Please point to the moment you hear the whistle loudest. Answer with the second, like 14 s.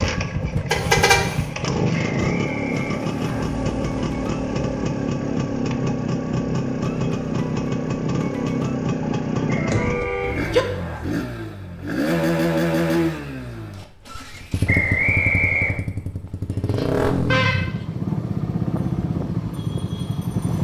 15 s.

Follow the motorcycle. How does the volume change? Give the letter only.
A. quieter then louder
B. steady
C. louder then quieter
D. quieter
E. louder
B.